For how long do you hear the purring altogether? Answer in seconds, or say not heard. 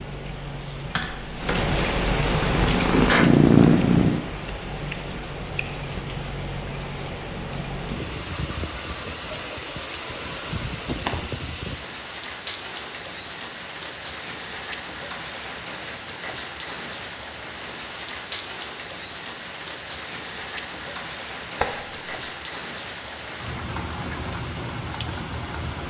2 s.